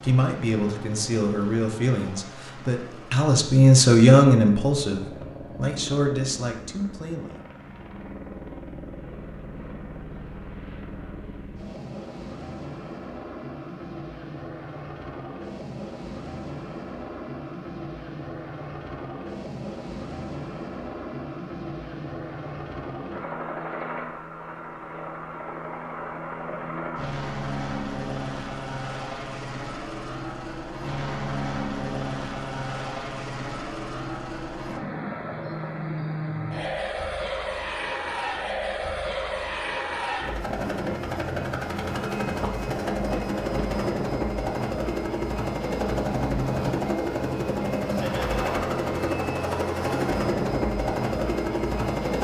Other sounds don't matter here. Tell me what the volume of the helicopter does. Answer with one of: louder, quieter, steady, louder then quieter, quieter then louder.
louder.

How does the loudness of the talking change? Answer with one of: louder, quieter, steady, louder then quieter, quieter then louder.
louder then quieter.